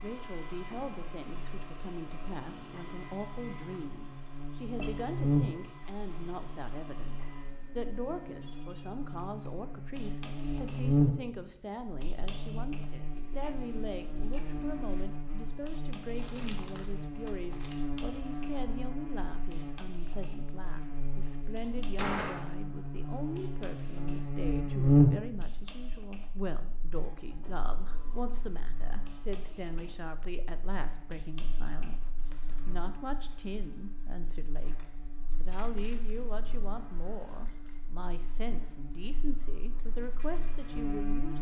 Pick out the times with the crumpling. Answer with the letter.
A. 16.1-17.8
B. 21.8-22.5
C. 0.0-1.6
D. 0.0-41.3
A.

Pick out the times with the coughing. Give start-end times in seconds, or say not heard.
not heard.